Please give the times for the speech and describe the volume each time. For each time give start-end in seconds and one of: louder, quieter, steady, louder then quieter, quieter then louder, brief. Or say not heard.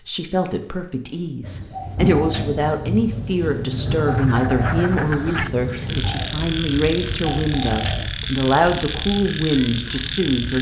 0.1-10.5 steady.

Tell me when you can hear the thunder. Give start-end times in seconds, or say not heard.
1.9-6.0.